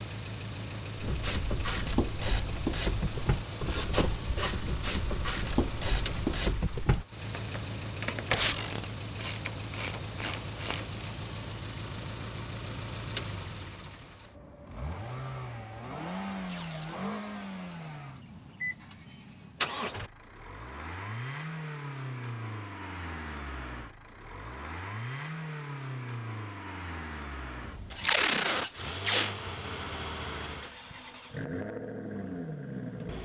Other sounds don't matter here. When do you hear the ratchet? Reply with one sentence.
The ratchet can be heard from 0.9 to 11.2 s.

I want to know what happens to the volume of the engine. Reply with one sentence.
The loudness of the engine stays about the same.